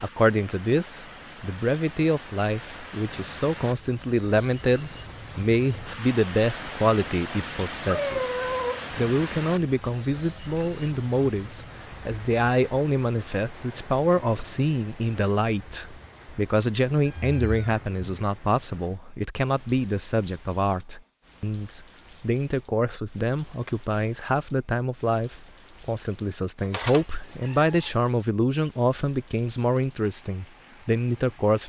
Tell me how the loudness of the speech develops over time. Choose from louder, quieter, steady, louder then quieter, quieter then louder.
steady.